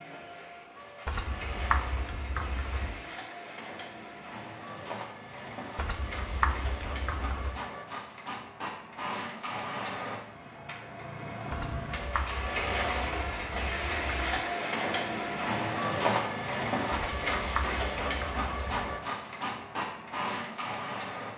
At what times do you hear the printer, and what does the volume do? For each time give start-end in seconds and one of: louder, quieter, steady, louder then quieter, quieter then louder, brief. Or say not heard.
0.0-21.3 louder.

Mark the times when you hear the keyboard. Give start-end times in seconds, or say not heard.
1.1-3.0, 5.8-7.5, 11.5-14.3, 16.9-18.8.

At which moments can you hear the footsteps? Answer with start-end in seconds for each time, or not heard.
not heard.